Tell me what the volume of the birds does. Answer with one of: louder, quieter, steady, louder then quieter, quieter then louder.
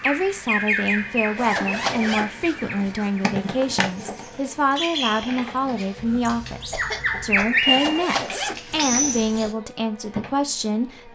quieter then louder.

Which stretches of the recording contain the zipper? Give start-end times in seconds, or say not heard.
1.4-3.1, 7.7-9.4.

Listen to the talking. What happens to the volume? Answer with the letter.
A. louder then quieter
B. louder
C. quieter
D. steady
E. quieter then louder
D.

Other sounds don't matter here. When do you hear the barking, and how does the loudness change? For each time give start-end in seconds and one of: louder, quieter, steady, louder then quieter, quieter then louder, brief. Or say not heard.
not heard.